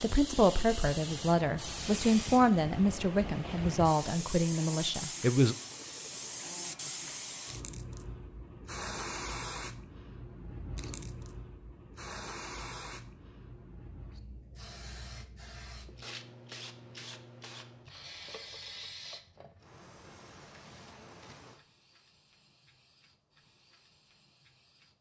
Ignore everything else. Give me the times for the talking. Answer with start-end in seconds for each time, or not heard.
0.0-5.5.